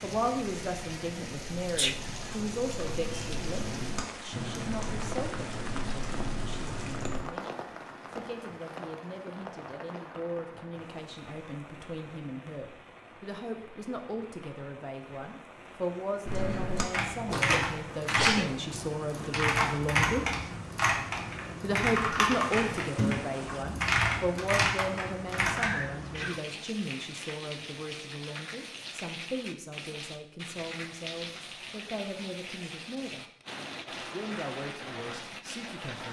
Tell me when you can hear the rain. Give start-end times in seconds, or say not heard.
0.0-36.0.